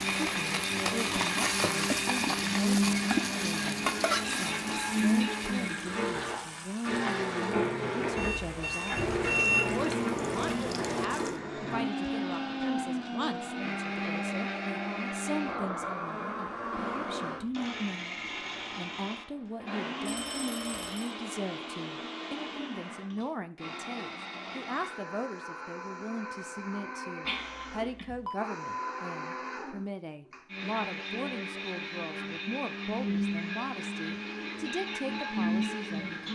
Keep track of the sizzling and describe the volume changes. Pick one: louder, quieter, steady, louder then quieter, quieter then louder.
quieter.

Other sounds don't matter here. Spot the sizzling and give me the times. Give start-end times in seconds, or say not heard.
0.0-11.4.